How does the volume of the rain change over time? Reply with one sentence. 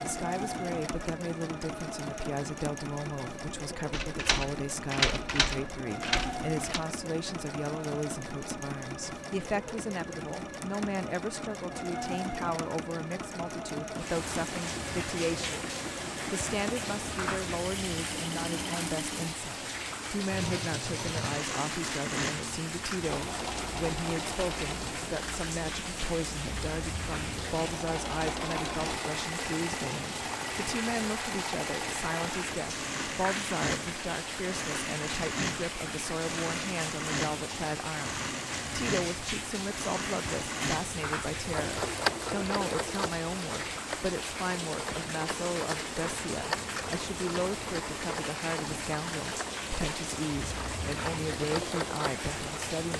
The volume of the rain stays about the same.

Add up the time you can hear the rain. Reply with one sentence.
You can hear the rain for 39 seconds altogether.